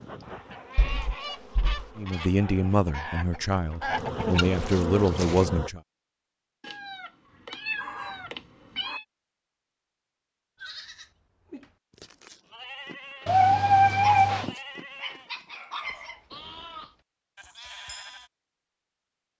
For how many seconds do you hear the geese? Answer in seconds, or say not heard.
5 s.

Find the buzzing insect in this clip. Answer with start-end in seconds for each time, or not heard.
0.0-5.7.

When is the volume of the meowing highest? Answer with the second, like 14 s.
14 s.